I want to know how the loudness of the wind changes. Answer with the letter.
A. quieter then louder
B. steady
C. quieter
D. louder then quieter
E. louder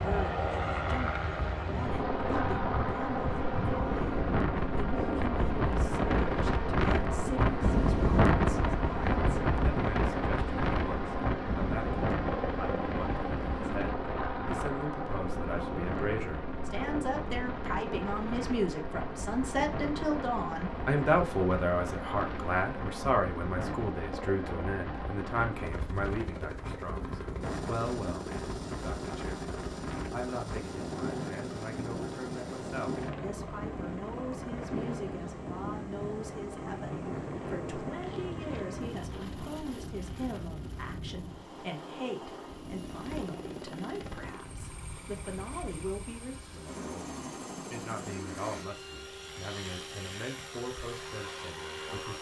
C.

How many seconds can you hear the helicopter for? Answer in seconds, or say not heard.
52 s.